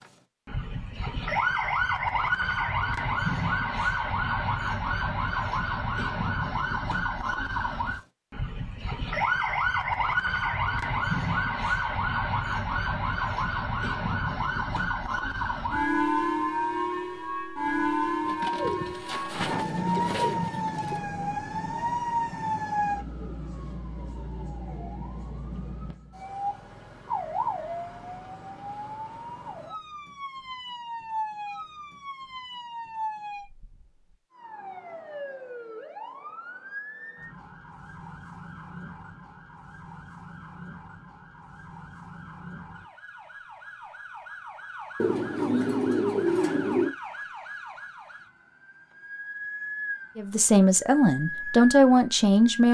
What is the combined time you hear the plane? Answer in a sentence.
You can't hear the plane here.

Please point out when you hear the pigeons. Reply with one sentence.
The pigeons can be heard from 18.2 to 21.0 s and from 45.0 to 47.0 s.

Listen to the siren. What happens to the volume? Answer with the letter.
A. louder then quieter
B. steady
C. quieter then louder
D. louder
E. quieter
E.